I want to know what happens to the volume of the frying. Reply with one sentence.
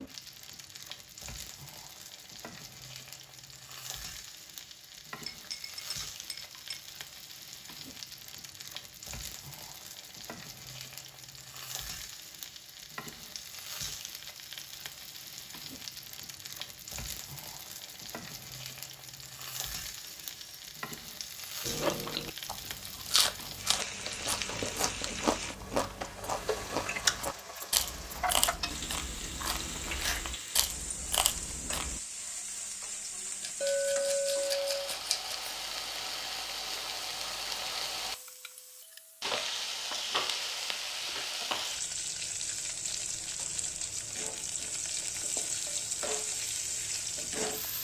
The volume of the frying goes up.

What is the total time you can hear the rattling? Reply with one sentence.
You can hear the rattling for 2 seconds altogether.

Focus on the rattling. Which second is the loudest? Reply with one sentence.
The volume of the rattling peaks at 35 seconds.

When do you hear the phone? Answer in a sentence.
The phone can't be heard in this clip.